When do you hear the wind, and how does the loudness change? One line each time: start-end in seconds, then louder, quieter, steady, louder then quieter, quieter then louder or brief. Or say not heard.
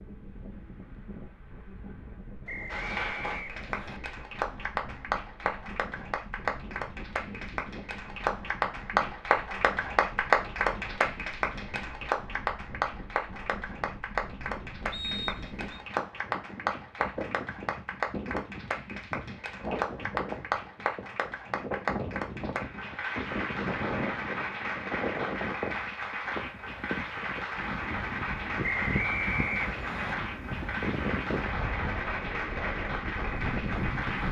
0.0-34.2 louder.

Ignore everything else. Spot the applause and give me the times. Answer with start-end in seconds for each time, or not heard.
2.7-34.2.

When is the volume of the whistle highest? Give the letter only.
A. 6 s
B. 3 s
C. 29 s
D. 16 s
C.